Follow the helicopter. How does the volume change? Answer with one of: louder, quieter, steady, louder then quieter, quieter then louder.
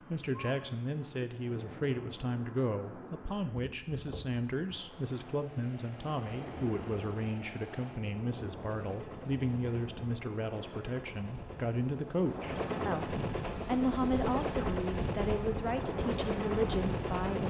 louder.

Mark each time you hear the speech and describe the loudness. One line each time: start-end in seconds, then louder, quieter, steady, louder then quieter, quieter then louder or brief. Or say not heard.
0.1-17.4 steady.